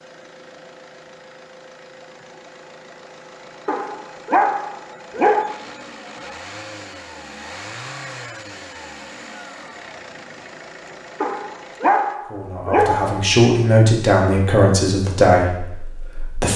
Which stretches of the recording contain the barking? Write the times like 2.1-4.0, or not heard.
3.6-5.6, 11.2-13.3.